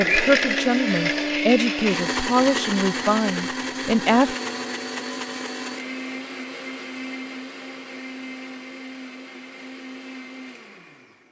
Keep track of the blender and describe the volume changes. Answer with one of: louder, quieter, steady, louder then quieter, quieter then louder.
quieter.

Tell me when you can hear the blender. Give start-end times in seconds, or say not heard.
0.0-11.2.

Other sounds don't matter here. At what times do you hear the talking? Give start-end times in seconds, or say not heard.
0.0-4.3.